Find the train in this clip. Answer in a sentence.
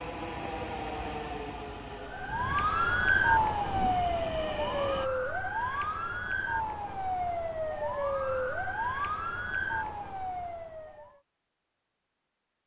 You can hear the train from 0.0 to 5.1 s.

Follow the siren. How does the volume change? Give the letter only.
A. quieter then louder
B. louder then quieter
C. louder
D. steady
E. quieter
E.